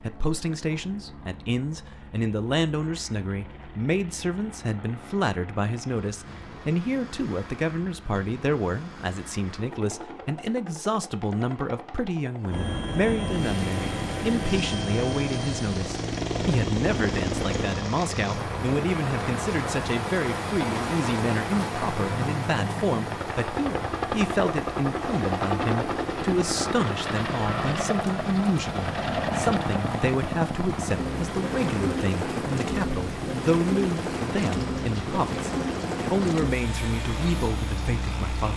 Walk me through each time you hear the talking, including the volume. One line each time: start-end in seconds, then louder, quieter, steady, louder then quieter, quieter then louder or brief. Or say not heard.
0.0-38.5 steady.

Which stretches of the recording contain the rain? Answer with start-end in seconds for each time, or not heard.
13.2-38.5.